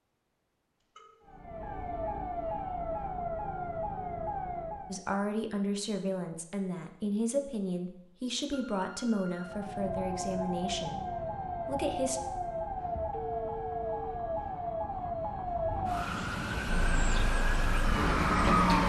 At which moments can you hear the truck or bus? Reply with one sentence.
You can hear the truck or bus from 16.6 to 18.8 s.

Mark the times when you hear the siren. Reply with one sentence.
The siren can be heard from 1.2 to 5.0 s and from 9.3 to 18.8 s.